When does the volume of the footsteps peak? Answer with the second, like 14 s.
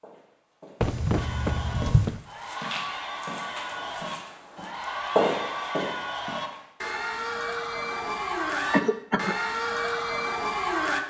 5 s.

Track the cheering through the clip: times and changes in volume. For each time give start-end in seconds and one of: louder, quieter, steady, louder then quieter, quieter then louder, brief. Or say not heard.
1.1-11.0 louder.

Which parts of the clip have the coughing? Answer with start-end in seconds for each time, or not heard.
0.8-2.2, 8.7-9.3.